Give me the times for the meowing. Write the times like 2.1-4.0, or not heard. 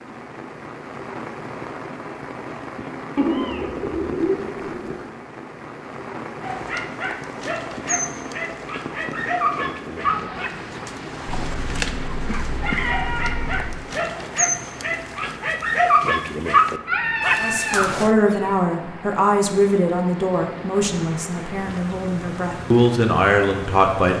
3.1-5.0, 11.2-13.8, 16.9-18.6.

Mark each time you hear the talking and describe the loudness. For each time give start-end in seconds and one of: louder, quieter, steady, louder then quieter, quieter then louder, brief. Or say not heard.
17.4-24.1 quieter then louder.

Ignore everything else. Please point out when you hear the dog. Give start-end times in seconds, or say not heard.
6.4-18.1.